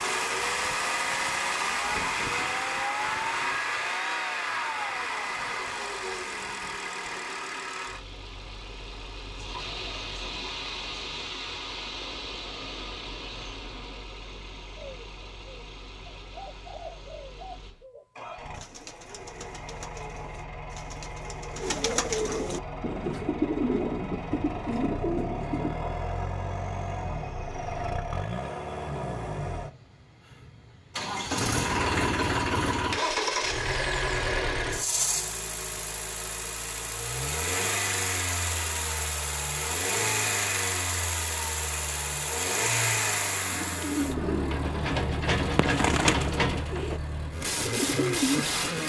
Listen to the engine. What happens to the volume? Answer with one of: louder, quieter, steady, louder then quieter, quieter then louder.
quieter then louder.